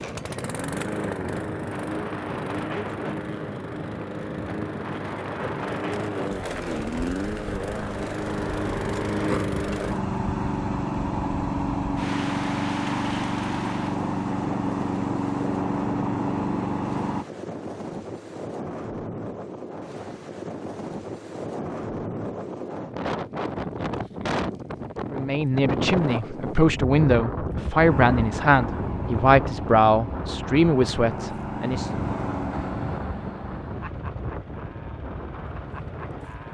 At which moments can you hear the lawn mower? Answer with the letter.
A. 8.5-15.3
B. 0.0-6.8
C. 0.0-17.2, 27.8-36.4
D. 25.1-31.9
C.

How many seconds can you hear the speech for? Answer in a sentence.
The speech can be heard for 7 seconds in total.